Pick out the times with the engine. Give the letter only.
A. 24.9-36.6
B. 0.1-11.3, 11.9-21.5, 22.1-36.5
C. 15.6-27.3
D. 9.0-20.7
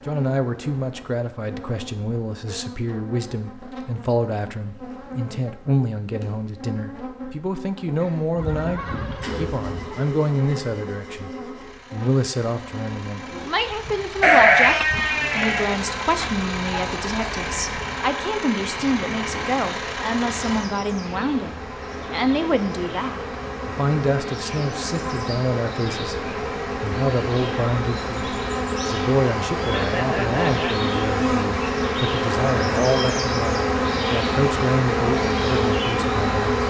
D.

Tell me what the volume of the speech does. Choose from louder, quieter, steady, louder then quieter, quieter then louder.
steady.